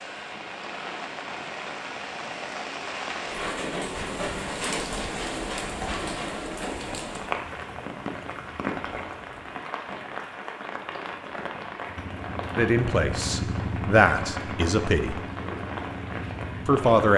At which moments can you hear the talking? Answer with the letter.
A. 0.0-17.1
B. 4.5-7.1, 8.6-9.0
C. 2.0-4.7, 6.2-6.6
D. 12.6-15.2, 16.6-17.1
D.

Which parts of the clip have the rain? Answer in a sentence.
You can hear the rain from 0.0 to 17.1 s.